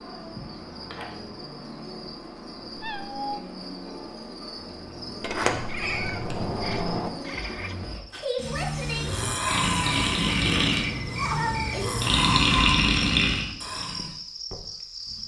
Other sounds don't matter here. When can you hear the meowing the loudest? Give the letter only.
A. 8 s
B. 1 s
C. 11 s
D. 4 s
C.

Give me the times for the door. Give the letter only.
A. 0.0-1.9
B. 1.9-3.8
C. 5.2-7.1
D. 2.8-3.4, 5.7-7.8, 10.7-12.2
C.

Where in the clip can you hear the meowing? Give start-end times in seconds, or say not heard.
2.8-3.4, 5.7-7.8, 10.7-12.2.